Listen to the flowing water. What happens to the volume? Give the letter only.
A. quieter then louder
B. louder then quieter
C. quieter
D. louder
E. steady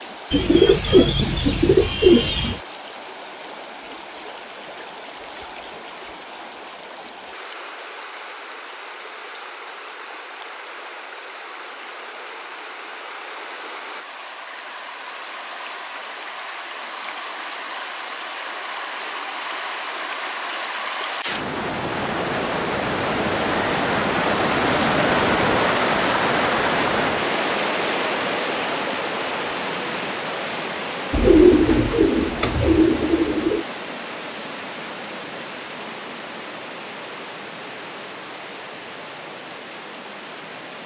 B.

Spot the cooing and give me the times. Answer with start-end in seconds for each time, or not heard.
0.3-2.6, 31.1-33.6.